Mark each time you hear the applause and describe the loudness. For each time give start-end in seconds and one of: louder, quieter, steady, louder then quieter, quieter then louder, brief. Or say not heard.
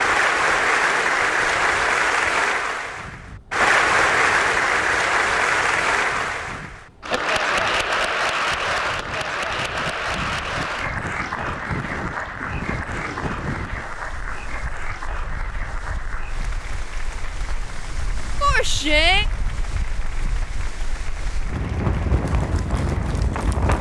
0.0-23.7 quieter.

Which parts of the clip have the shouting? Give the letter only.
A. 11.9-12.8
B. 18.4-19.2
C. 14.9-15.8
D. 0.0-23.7
B.